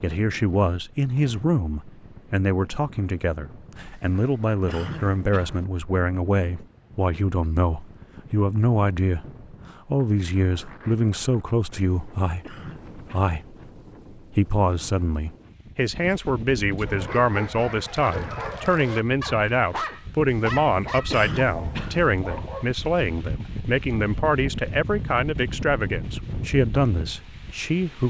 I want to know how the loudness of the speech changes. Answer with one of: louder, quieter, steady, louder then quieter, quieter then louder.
steady.